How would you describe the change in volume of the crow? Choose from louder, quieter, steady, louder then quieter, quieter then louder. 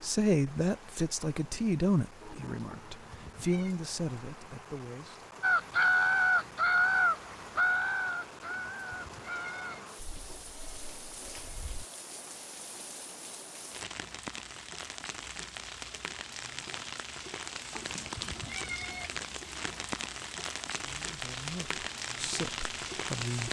quieter.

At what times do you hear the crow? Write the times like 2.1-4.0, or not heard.
5.4-11.8.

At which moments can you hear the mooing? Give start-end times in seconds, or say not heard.
not heard.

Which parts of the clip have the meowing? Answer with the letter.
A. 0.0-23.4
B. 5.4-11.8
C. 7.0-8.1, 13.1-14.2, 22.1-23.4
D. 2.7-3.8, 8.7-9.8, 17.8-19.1
D.